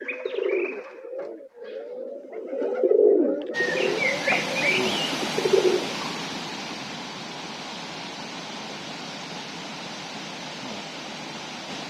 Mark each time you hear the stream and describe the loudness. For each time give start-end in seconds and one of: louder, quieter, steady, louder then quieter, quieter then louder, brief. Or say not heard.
3.5-11.8 quieter.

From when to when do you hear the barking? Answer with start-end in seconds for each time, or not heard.
not heard.